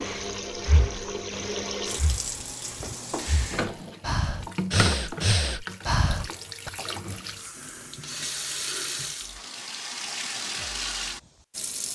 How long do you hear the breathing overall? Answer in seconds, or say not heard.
7 s.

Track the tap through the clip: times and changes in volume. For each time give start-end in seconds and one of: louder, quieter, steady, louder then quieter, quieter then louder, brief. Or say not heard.
0.0-11.8 steady.